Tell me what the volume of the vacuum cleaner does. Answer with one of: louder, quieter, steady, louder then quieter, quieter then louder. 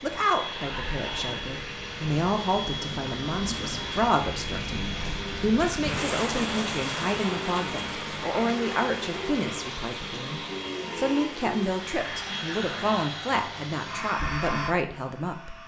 steady.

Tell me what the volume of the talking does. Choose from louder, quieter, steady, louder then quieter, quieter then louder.
steady.